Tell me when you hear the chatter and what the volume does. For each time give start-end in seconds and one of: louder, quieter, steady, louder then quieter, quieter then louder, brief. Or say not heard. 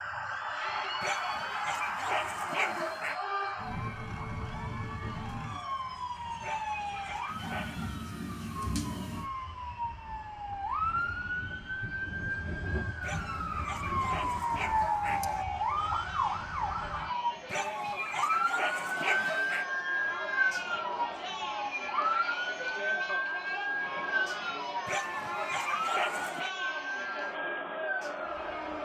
0.0-28.8 quieter then louder.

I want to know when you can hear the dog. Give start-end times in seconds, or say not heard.
1.0-3.2, 6.4-7.9, 13.0-15.4, 17.4-19.6, 24.9-26.5.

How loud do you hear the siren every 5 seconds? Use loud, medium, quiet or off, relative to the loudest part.
medium, medium, loud, loud, loud, medium.